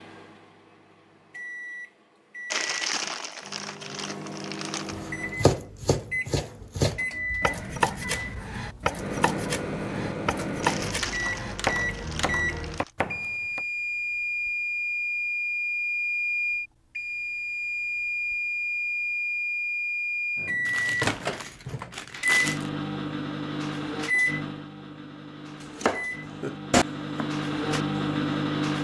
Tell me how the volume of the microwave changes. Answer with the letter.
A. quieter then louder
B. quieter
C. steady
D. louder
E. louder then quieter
D.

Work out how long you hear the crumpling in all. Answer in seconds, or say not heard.
7 s.